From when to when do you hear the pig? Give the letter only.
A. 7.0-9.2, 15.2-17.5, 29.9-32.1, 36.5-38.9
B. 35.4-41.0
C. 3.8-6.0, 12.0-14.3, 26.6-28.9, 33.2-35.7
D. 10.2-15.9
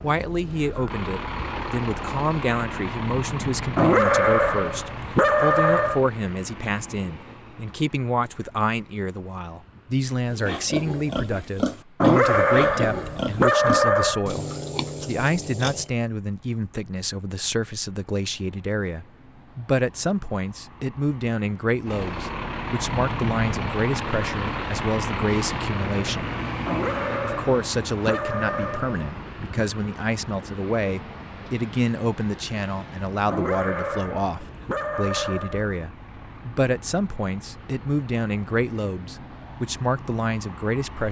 D.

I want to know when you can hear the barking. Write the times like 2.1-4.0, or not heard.
3.8-6.0, 12.0-14.3, 26.6-28.9, 33.2-35.7.